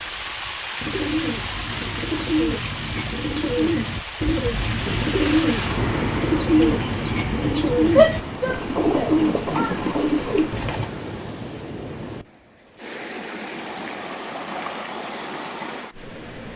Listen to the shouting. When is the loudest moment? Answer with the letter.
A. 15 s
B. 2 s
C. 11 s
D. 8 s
D.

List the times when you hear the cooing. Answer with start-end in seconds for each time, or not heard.
0.8-10.8.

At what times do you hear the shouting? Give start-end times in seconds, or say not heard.
8.0-9.8.